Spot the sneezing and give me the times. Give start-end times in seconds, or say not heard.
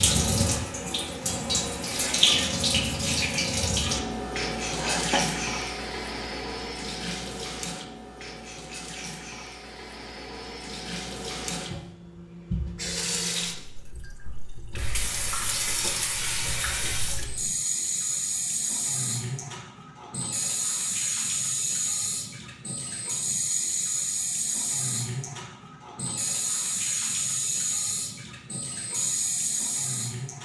4.6-5.2.